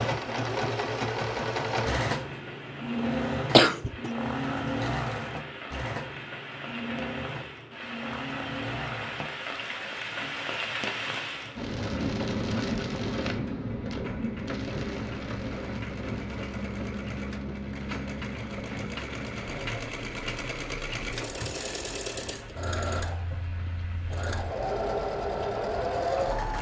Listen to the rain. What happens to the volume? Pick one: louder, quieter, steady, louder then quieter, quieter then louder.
louder then quieter.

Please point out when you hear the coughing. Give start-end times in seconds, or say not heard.
3.5-4.1.